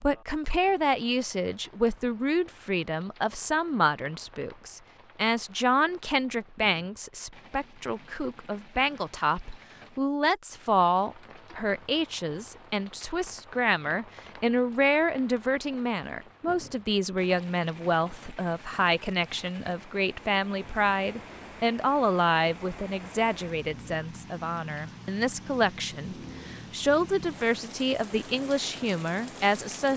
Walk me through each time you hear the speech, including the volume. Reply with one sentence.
The speech can be heard from 0.0 to 29.9 s, at a steady volume.